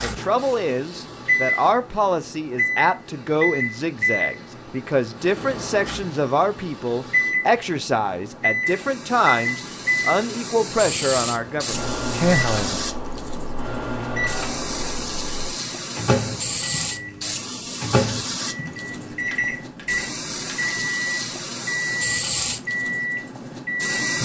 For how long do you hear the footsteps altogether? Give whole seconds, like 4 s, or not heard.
not heard.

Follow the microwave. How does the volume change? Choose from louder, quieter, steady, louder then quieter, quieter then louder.
steady.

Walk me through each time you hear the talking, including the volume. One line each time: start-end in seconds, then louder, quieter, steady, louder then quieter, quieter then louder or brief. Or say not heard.
0.0-12.8 steady.